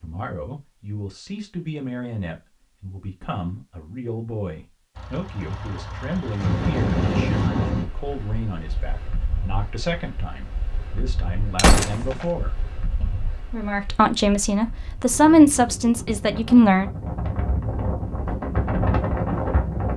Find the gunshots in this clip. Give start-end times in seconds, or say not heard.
11.6-12.2.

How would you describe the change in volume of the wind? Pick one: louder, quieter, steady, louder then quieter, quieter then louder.
quieter then louder.